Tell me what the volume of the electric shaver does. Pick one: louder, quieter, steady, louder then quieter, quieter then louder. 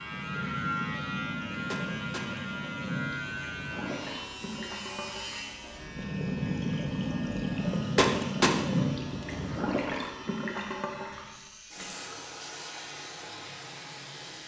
quieter.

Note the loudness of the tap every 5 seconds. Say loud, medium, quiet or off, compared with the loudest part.
medium, loud, medium.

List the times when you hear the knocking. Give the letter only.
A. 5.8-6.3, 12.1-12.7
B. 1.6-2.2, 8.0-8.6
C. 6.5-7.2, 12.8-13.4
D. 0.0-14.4
B.